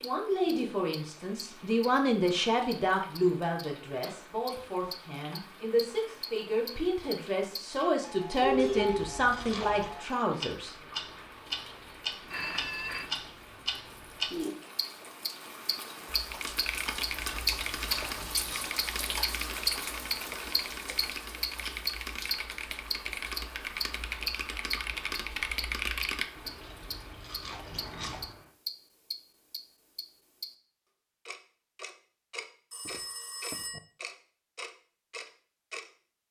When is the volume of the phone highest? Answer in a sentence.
The loudest moment of the phone is at 9 seconds.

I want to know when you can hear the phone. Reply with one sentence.
You can hear the phone from 8.4 to 9.1 s, from 12.3 to 13.1 s and from 32.7 to 33.8 s.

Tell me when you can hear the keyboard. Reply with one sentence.
You can hear the keyboard from 16.1 to 26.2 s.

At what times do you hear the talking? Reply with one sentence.
You can hear the talking from 0.0 to 10.8 s.